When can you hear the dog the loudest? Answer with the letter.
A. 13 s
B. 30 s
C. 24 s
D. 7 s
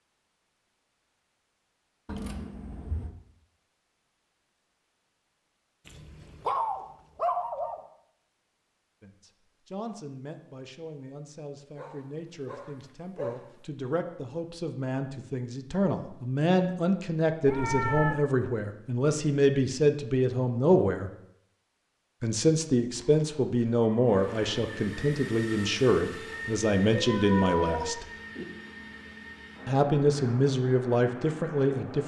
D.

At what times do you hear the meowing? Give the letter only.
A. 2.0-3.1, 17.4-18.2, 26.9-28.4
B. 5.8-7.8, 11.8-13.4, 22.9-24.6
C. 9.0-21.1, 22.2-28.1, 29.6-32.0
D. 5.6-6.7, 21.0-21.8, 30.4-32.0
A.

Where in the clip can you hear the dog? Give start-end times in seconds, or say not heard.
5.8-7.8, 11.8-13.4, 22.9-24.6.